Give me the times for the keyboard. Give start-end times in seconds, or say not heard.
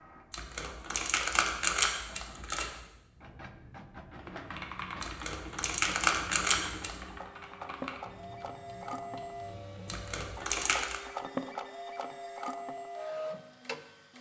4.2-9.6.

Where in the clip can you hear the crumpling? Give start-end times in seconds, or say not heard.
0.3-2.6, 5.0-7.0, 9.8-11.0.